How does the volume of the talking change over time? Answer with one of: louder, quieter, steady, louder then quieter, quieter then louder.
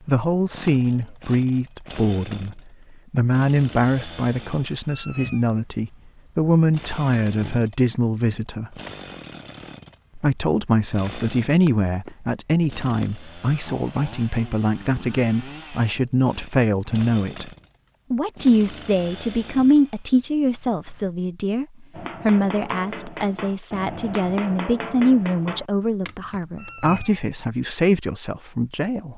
steady.